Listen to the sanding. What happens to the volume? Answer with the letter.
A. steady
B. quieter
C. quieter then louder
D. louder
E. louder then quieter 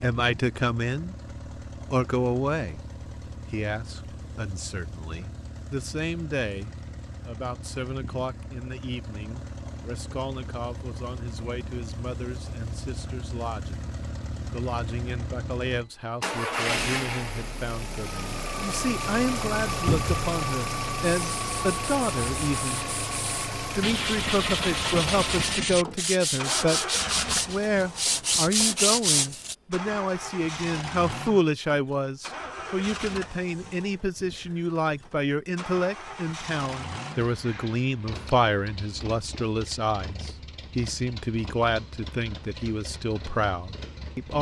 D.